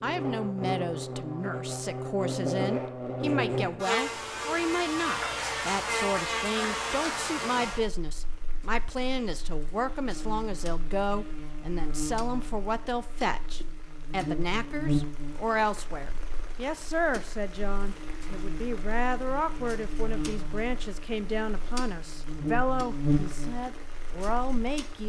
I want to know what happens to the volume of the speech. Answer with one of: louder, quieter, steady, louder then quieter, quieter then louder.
steady.